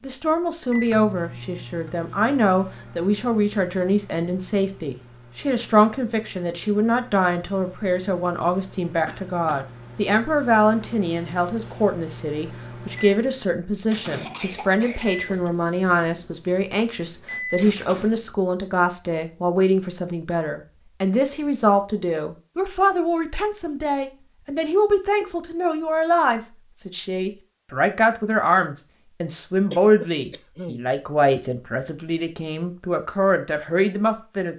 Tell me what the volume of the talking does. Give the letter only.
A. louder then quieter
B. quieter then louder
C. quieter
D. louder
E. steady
E.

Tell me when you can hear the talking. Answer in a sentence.
You can hear the talking from 0.0 to 34.5 s.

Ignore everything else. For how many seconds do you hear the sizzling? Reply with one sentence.
You can't hear the sizzling here.